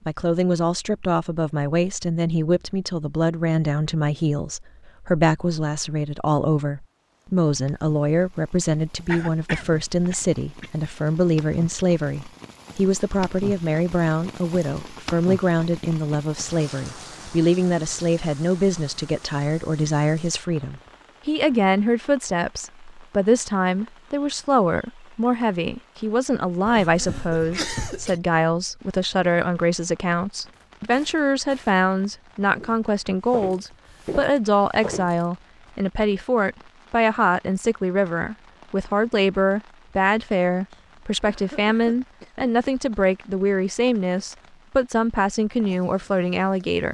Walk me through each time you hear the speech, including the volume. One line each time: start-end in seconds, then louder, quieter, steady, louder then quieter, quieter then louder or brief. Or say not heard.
0.1-46.8 steady.